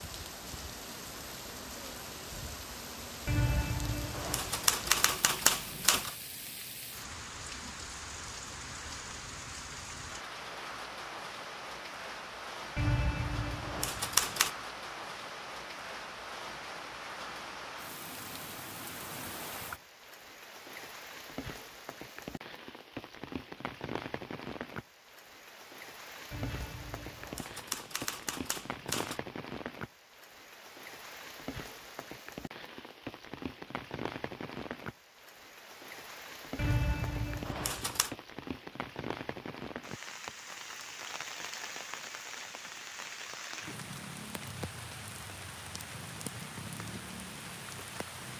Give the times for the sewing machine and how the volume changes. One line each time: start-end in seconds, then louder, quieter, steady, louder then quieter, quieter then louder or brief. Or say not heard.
not heard.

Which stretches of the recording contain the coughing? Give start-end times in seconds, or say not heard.
not heard.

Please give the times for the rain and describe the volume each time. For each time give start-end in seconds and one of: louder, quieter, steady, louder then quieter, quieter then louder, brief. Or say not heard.
0.0-48.3 steady.